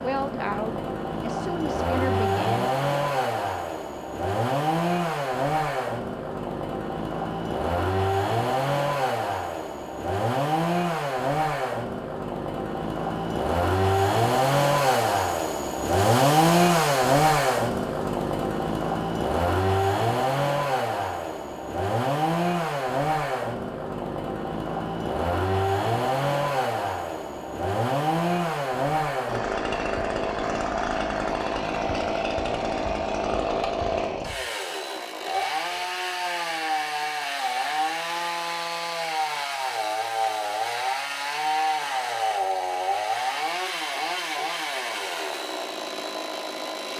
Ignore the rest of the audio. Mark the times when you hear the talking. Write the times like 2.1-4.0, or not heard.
0.0-2.7.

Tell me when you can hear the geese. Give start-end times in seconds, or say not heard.
not heard.